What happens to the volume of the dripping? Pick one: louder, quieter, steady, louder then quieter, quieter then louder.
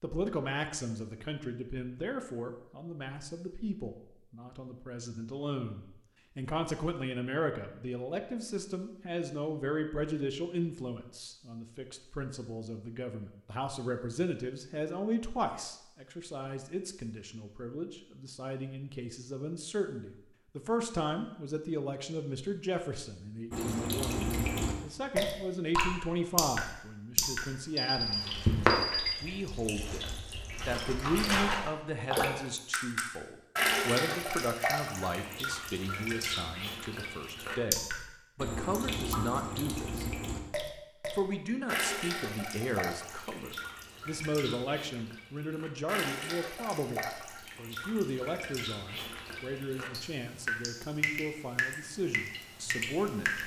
quieter.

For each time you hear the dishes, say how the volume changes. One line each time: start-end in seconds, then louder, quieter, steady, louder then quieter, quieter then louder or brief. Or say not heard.
not heard.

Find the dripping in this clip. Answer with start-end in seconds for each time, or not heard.
23.5-53.4.